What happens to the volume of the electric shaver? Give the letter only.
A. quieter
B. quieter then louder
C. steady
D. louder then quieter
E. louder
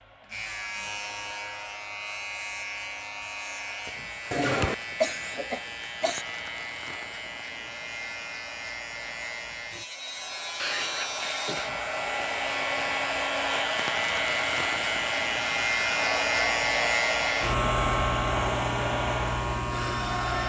E.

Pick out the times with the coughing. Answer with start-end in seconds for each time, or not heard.
4.3-6.2, 10.6-11.7.